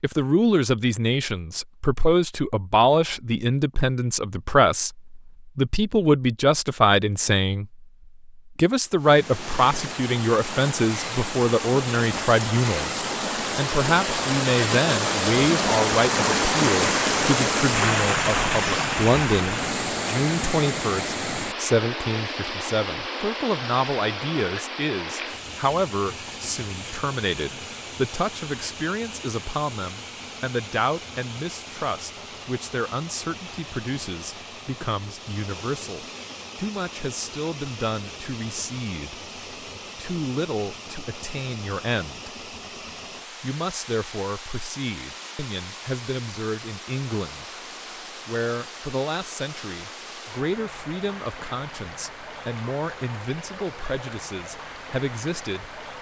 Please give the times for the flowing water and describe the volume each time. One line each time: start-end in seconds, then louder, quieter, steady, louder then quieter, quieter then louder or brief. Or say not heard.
8.9-55.9 quieter.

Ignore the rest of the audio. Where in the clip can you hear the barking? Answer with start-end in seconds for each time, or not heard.
not heard.